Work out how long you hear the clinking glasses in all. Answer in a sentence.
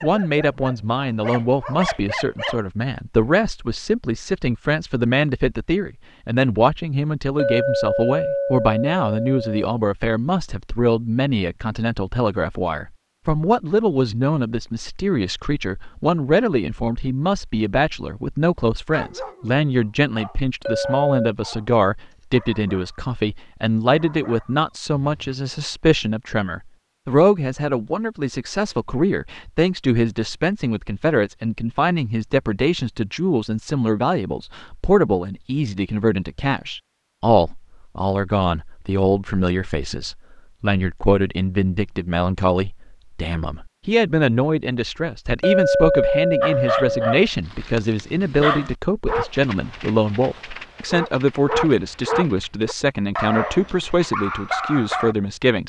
You can hear the clinking glasses for 4 seconds altogether.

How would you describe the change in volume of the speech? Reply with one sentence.
The loudness of the speech stays about the same.